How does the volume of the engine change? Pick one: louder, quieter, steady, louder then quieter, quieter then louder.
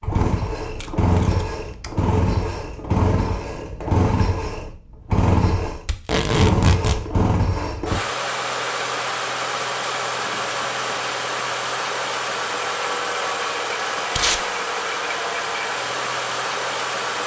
steady.